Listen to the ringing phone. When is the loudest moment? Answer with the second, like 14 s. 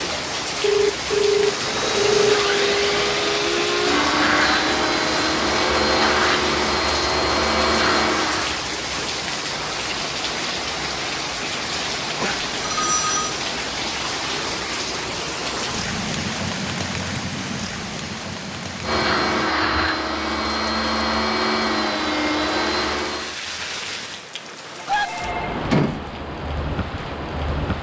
1 s.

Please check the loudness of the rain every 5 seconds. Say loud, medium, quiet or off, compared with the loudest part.
loud, loud, loud, loud, medium, loud.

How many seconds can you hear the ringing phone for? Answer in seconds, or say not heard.
4 s.